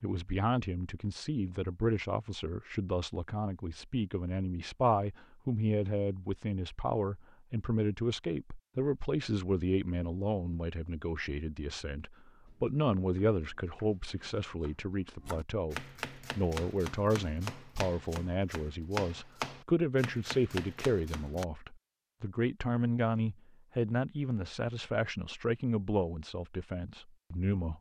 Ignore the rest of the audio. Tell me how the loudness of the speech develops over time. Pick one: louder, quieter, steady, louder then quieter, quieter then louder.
steady.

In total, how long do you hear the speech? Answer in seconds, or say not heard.
28 s.